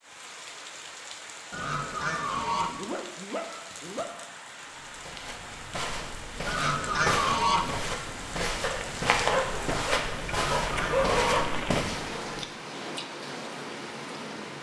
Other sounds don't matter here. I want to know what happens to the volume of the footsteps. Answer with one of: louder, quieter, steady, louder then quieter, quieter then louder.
louder.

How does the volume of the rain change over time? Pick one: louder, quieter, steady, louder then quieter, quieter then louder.
louder.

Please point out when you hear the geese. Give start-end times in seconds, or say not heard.
1.5-2.8, 6.5-7.8, 10.2-11.6.